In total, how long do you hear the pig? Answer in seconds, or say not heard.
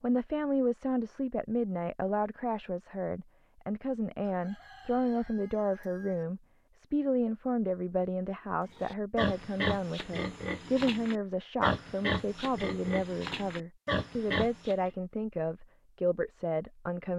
6 s.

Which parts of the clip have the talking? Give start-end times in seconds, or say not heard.
0.0-17.1.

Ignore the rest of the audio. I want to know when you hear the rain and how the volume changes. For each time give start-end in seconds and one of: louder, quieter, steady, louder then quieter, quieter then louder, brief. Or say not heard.
not heard.